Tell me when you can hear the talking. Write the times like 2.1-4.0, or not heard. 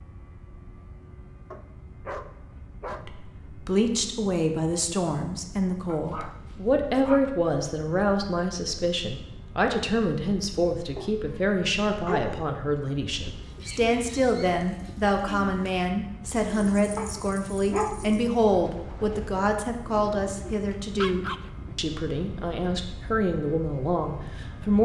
3.0-24.8.